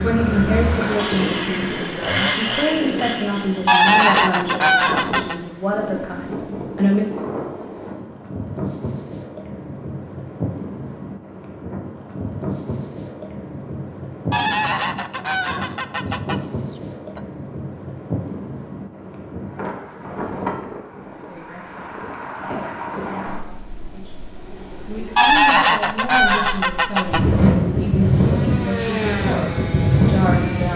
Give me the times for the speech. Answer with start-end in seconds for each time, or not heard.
0.0-7.0, 21.2-30.7.